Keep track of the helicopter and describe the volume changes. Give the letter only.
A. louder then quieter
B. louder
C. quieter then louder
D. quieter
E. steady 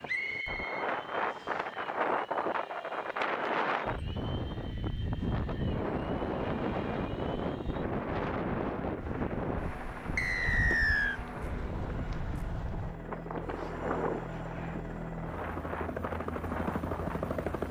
B.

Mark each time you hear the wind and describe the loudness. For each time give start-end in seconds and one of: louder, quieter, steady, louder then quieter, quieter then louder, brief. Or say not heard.
0.0-17.6 quieter.